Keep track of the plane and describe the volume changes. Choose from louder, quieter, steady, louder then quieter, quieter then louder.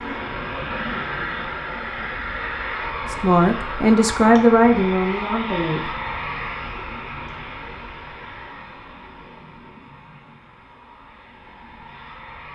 quieter.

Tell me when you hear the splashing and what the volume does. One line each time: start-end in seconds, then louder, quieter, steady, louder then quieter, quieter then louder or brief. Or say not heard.
not heard.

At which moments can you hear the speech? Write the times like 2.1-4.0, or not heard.
3.1-5.9.